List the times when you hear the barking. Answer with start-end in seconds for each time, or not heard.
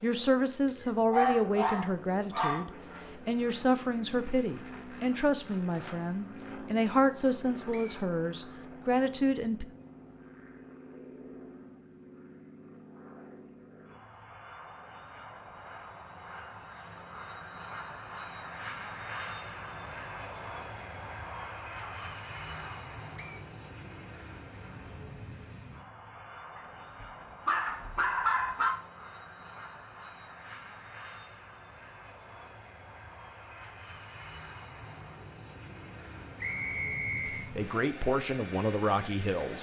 0.7-2.6, 21.3-22.7, 26.6-28.8.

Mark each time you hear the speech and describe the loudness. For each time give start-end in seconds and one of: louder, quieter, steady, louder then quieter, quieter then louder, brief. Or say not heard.
0.0-9.7 steady
37.2-39.5 brief.